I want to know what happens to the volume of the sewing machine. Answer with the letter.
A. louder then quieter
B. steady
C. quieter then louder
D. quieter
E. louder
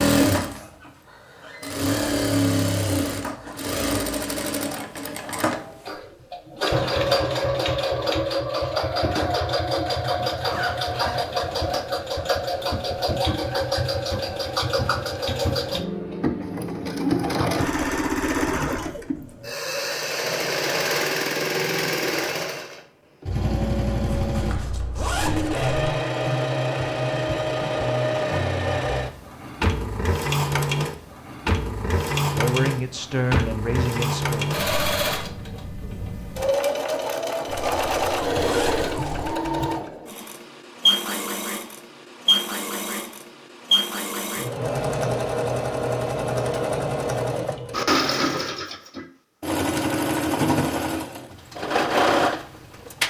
B.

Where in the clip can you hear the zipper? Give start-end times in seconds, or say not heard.
9.8-11.8, 24.1-25.9, 37.5-39.4.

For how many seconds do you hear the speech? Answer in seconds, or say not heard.
2 s.